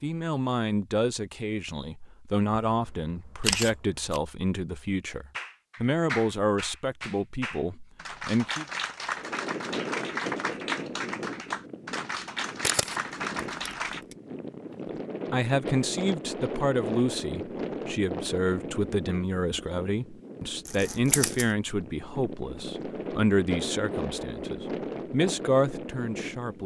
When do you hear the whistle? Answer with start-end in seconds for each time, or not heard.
not heard.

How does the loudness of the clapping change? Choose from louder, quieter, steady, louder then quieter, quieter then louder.
steady.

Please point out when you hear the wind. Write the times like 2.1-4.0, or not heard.
9.2-26.6.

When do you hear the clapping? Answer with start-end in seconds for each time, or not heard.
5.3-14.1.